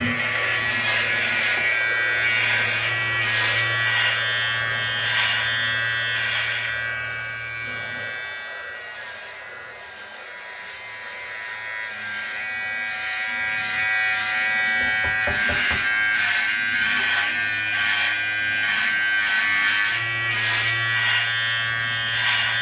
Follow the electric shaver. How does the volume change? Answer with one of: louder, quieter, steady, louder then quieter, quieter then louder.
quieter then louder.